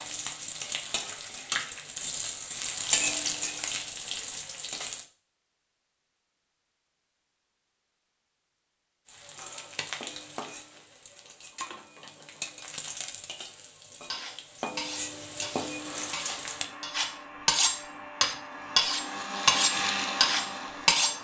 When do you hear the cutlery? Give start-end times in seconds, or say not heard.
14.1-21.1.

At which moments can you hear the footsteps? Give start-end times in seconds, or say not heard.
not heard.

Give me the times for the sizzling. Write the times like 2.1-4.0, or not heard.
0.0-5.0, 9.1-16.6.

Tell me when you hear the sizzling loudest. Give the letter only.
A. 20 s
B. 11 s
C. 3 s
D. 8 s
C.